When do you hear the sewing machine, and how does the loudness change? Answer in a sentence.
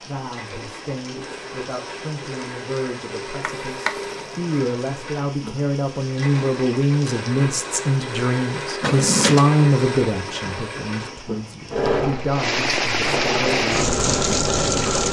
You can hear the sewing machine from 0.2 to 15.0 s, getting louder.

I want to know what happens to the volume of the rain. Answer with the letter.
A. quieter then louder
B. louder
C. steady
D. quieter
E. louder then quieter
B.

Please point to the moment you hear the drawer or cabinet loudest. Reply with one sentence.
The loudest moment of the drawer or cabinet is at 9 seconds.